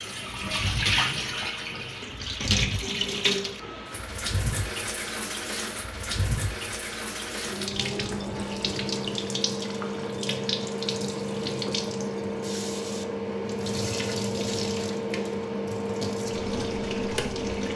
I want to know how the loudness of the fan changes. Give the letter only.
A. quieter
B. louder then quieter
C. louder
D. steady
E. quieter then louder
C.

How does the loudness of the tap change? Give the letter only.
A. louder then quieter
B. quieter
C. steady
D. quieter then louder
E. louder
B.